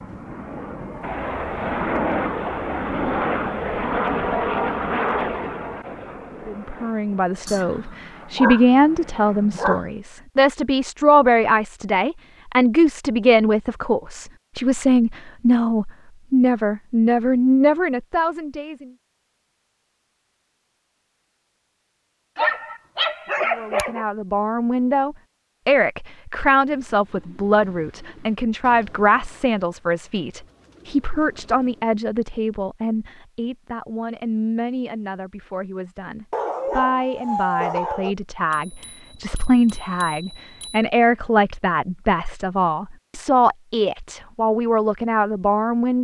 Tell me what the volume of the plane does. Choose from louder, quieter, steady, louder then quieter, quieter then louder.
quieter.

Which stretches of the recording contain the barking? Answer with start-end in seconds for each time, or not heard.
7.5-8.7, 9.3-9.8, 22.4-24.1, 36.3-38.1.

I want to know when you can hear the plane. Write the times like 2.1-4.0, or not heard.
0.0-10.1.